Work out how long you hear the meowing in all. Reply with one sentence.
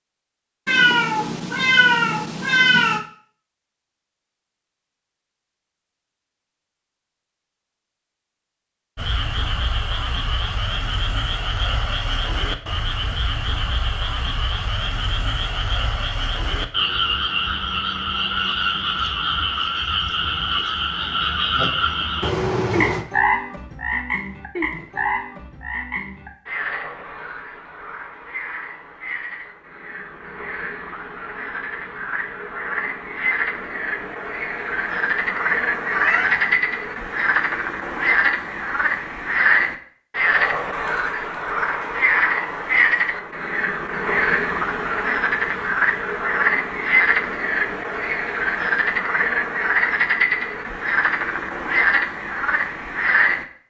You can hear the meowing for 4 seconds altogether.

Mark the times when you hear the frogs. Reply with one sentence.
The frogs can be heard from 8.9 to 53.5 s.